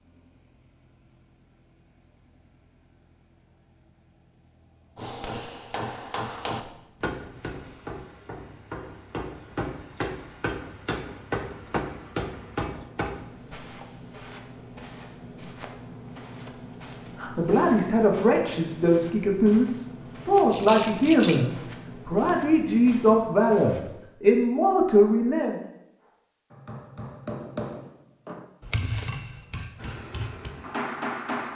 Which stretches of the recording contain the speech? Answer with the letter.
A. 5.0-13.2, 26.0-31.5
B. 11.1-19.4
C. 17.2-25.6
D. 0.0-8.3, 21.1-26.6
C.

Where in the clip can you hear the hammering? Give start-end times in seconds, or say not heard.
5.0-13.2, 26.0-31.5.